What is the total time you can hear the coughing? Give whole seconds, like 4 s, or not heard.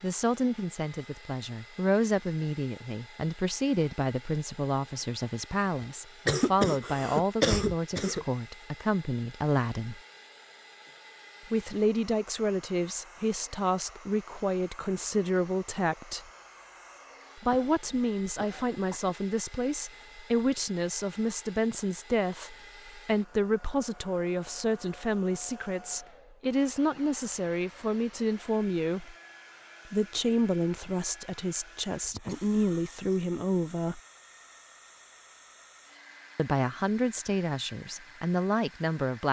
5 s.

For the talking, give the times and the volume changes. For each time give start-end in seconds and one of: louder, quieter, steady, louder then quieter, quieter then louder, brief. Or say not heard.
0.0-10.0 steady
11.5-16.2 steady
17.4-29.1 steady
29.9-34.0 quieter then louder
36.4-39.2 brief.